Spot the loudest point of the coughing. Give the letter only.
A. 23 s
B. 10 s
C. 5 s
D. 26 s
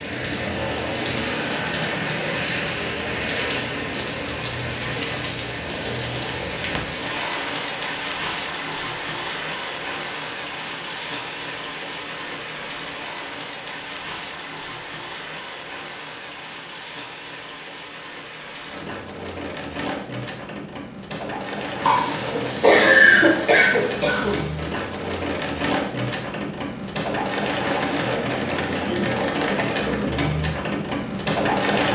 A.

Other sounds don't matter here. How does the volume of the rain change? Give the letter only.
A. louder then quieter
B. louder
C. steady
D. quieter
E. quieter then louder
E.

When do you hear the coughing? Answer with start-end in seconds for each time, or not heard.
21.8-24.5.